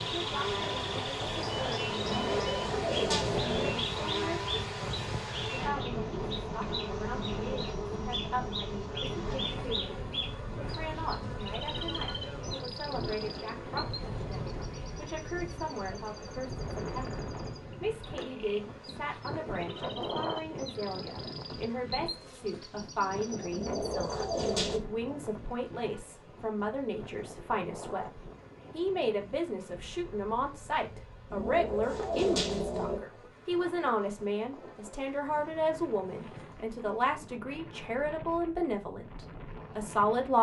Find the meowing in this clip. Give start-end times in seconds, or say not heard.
2.0-3.8, 23.5-24.8, 31.3-33.0.